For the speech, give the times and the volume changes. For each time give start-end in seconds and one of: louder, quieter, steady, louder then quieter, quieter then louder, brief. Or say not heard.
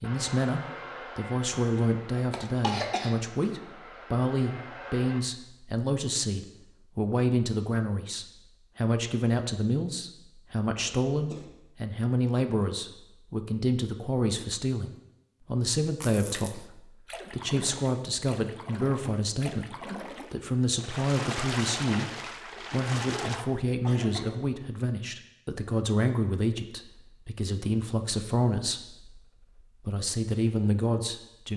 0.0-31.5 steady.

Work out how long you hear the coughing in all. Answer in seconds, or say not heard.
3 s.